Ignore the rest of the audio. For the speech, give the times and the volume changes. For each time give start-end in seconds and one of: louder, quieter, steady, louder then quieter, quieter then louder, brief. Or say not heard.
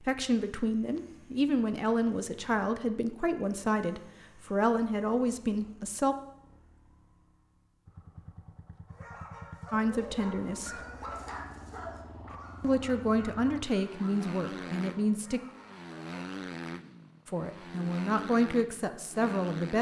0.0-6.2 steady
9.7-10.8 brief
12.6-15.4 brief
17.2-19.7 brief.